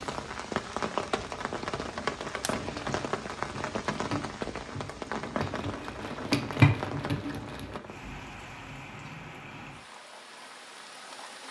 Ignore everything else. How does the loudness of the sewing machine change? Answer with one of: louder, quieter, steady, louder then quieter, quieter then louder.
louder.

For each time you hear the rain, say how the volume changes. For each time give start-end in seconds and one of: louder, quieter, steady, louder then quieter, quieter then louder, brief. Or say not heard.
0.0-11.4 quieter.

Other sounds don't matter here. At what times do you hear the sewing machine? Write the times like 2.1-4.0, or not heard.
2.6-7.8.